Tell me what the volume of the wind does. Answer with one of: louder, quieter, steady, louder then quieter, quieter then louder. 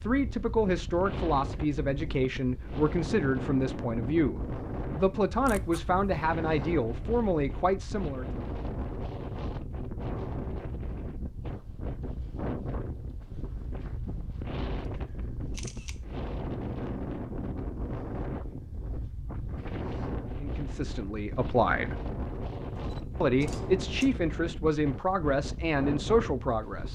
steady.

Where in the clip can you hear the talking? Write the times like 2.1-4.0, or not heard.
0.0-8.2, 20.4-22.0, 23.2-26.9.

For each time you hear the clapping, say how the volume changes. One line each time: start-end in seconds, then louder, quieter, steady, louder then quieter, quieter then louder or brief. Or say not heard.
not heard.